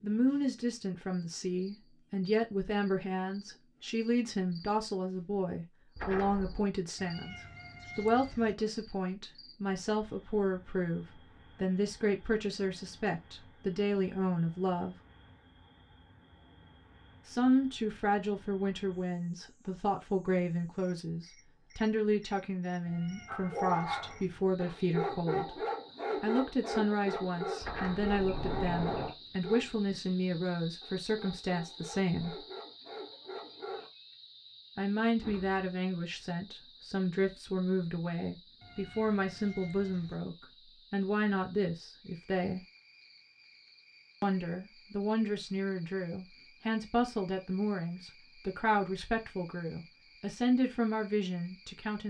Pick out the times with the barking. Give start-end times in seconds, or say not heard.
23.2-33.9.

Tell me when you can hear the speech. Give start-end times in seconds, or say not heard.
0.0-14.9, 17.2-32.5, 34.8-42.6, 44.2-52.0.